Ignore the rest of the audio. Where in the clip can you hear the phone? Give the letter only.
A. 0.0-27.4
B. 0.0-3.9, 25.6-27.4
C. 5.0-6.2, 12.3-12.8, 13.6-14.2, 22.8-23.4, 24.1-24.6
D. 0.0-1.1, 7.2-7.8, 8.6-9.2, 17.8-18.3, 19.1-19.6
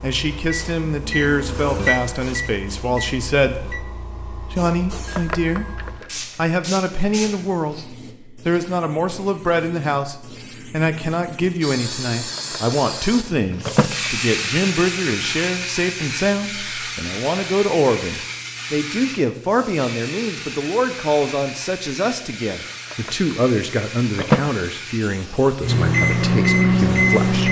C.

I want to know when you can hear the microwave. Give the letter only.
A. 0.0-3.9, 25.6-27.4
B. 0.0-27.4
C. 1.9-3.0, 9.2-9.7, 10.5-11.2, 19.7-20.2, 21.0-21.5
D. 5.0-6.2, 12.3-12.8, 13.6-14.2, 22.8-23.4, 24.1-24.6
A.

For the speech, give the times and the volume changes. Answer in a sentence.
The speech can be heard from 0.0 to 27.4 s, at a steady volume.